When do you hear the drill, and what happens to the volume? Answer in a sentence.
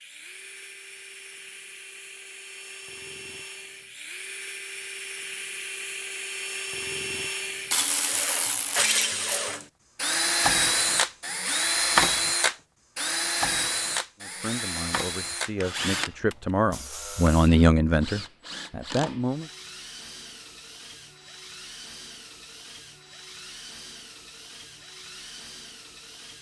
You can hear the drill from 0.0 to 26.3 s, getting louder then quieter.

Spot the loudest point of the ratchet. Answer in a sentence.
The volume of the ratchet peaks at 8 seconds.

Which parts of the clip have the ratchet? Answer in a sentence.
You can hear the ratchet from 7.7 to 9.4 s.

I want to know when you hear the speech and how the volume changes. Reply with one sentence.
You can hear the speech from 14.2 to 19.5 s, getting louder then quieter.